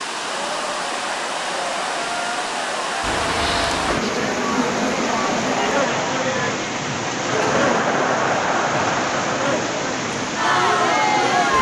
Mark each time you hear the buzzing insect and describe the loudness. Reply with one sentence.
You can hear the buzzing insect from 3.0 to 11.5 s, getting quieter.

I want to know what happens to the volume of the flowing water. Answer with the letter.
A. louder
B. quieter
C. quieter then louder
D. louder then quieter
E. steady
E.